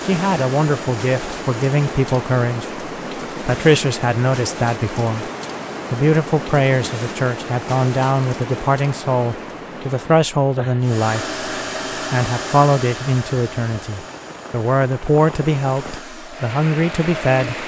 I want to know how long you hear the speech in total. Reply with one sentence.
You can hear the speech for 16 seconds altogether.